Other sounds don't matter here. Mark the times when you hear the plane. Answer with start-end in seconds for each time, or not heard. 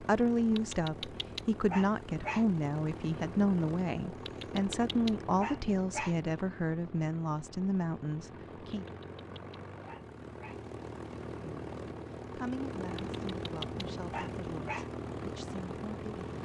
0.0-16.4.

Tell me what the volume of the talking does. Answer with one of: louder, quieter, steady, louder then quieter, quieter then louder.
quieter.